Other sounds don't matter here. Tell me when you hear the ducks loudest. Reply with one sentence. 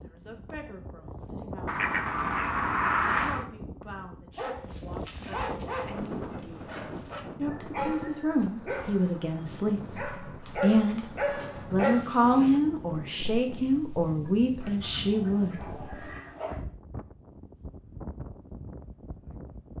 The volume of the ducks peaks at 3 seconds.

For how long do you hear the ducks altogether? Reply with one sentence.
You can hear the ducks for 4 seconds altogether.